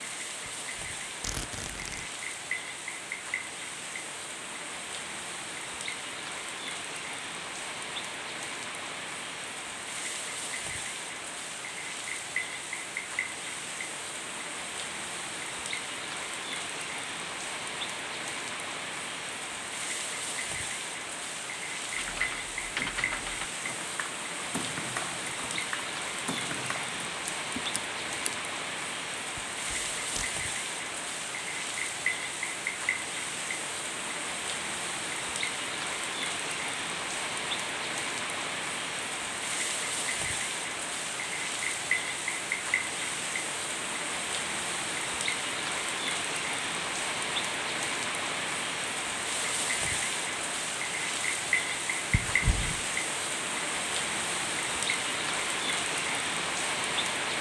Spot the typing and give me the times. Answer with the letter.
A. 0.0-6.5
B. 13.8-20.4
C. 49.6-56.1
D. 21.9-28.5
D.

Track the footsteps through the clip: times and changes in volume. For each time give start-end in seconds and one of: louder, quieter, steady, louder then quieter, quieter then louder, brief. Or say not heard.
not heard.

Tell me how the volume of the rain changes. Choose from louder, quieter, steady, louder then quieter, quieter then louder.
louder.